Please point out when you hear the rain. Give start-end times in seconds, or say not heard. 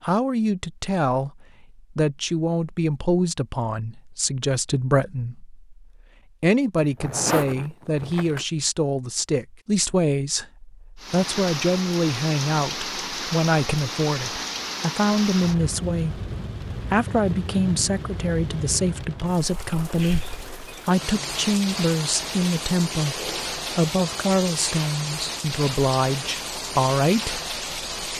10.9-28.1.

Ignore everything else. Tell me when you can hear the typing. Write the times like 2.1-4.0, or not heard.
not heard.